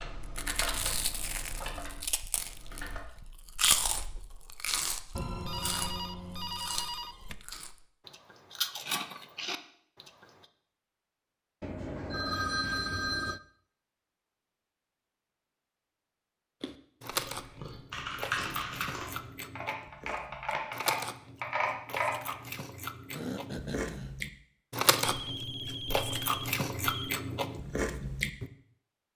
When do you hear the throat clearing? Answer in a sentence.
The throat clearing can be heard from 23.1 to 24.1 s.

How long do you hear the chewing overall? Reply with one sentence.
You can hear the chewing for 22 seconds altogether.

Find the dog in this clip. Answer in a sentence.
You can't hear the dog here.